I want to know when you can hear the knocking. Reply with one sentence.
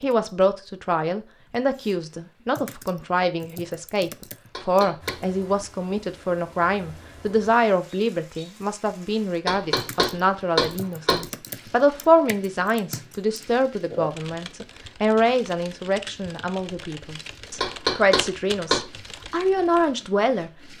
The knocking can be heard from 4.5 to 5.2 s, from 9.4 to 11.2 s and from 17.6 to 18.9 s.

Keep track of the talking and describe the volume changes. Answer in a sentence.
The volume of the talking stays about the same.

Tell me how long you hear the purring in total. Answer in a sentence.
The purring can't be heard in this clip.